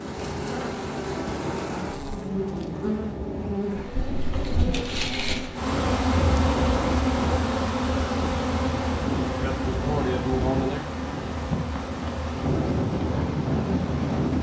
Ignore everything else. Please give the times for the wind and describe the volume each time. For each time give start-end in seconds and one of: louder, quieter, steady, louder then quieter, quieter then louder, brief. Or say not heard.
0.0-14.3 louder.